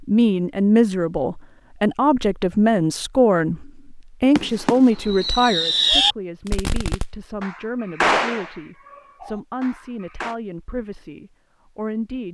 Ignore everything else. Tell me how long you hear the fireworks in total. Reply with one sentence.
The fireworks can be heard for 6 seconds in total.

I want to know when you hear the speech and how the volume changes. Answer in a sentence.
You can hear the speech from 0.0 to 12.2 s, getting quieter.